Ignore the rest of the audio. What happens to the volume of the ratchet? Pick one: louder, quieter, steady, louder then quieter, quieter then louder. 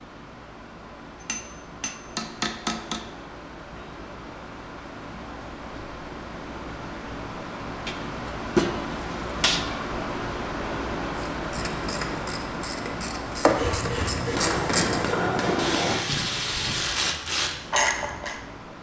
louder.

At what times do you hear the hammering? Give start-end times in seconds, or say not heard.
1.2-3.1, 7.8-9.7, 13.4-16.1.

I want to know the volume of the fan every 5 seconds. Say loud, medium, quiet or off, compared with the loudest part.
medium, loud, loud, medium.